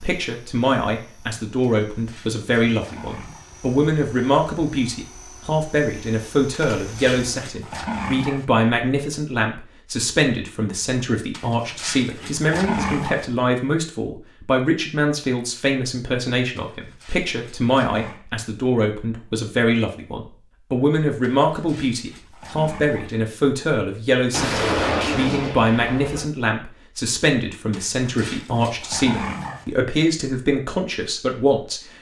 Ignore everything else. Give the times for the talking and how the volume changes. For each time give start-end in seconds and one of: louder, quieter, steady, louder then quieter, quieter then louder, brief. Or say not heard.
0.0-31.8 steady.